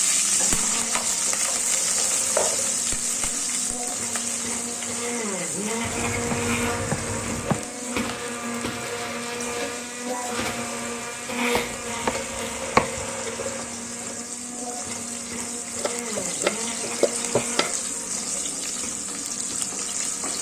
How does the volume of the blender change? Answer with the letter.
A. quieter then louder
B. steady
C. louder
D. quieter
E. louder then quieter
E.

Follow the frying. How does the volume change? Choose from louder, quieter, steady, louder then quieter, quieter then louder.
quieter then louder.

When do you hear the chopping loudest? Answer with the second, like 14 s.
13 s.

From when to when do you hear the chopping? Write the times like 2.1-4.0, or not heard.
0.9-2.5, 5.8-7.7, 11.6-13.1, 15.8-17.8.